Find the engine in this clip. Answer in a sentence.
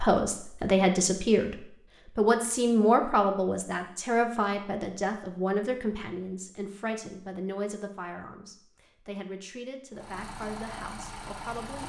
The engine can be heard from 9.9 to 11.8 s.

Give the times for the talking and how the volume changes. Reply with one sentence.
You can hear the talking from 0.0 to 11.8 s, getting quieter.